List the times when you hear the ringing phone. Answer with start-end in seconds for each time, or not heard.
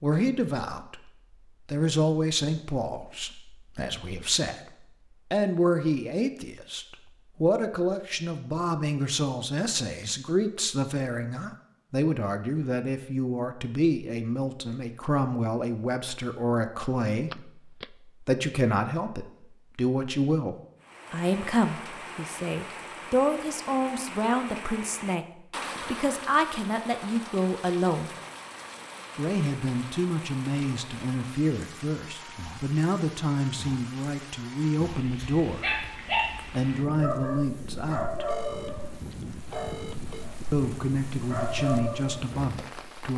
17.3-17.9, 38.2-40.2.